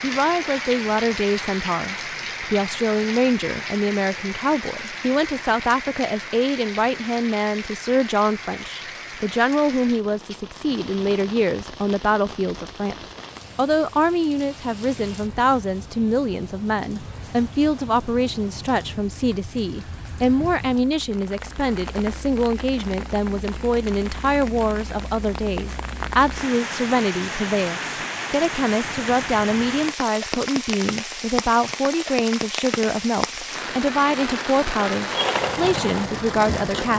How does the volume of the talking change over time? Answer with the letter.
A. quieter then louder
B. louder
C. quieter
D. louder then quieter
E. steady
E.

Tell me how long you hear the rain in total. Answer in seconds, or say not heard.
37 s.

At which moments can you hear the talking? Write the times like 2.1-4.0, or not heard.
0.0-12.9, 13.6-36.9.